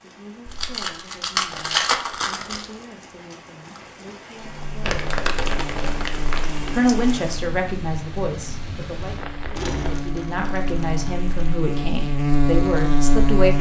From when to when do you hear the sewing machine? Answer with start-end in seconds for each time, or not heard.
not heard.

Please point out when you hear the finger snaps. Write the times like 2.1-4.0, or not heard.
not heard.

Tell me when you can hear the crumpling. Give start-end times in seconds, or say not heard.
0.5-2.7, 4.8-6.8, 9.6-11.6.